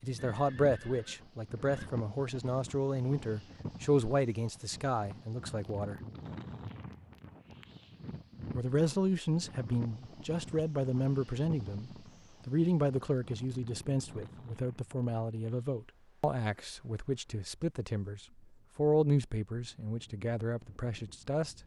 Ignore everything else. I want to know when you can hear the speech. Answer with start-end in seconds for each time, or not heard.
0.0-6.0, 8.5-21.6.